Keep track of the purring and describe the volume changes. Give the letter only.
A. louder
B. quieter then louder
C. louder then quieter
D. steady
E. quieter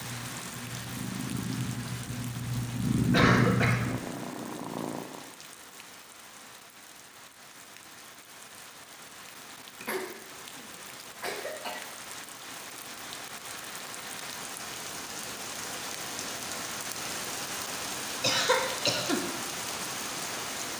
C.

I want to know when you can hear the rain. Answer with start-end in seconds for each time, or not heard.
0.0-20.7.